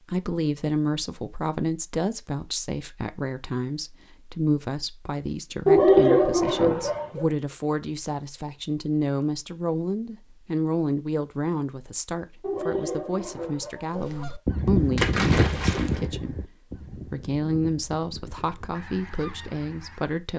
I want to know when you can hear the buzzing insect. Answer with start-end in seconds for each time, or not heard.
not heard.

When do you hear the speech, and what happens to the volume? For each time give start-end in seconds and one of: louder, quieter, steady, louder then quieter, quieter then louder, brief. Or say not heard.
0.1-20.3 steady.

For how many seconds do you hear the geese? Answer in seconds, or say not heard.
6 s.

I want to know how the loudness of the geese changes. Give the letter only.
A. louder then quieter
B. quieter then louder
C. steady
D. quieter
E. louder
D.